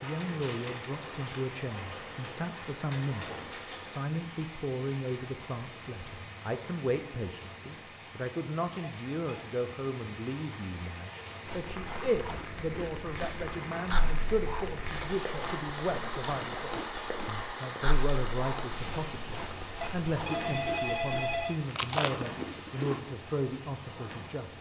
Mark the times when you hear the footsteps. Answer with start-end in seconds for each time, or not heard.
not heard.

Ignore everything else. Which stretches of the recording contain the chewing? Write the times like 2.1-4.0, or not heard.
11.4-23.1.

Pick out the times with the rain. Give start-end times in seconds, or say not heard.
0.0-24.5.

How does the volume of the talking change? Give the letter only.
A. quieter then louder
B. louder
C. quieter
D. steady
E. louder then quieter
D.